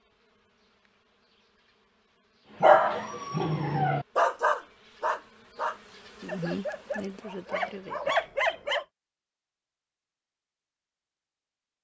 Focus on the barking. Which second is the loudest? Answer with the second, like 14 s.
3 s.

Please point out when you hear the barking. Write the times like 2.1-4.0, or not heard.
2.6-8.8.